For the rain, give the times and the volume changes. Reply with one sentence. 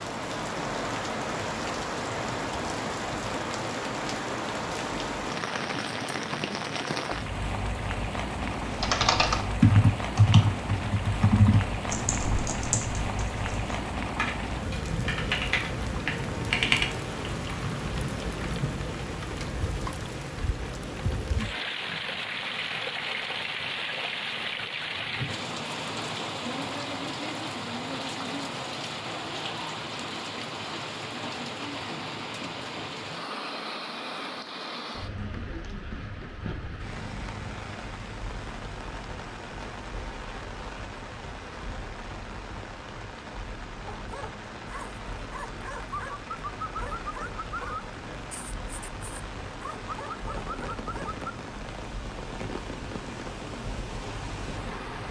The rain can be heard from 0.0 to 55.0 s, getting quieter.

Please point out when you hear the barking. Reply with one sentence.
The barking can be heard from 43.9 to 51.4 s.